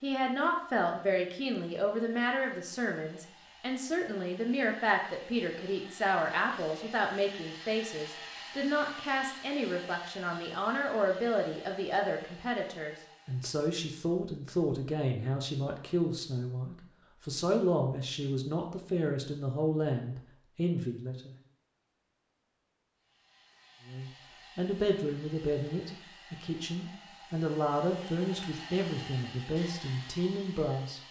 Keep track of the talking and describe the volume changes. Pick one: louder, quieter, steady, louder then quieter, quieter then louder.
steady.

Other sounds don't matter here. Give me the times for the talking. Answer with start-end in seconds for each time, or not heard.
0.0-21.4, 23.9-31.0.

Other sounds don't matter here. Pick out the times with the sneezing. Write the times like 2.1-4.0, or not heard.
not heard.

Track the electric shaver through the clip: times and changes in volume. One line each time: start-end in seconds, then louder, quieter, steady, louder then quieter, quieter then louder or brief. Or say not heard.
not heard.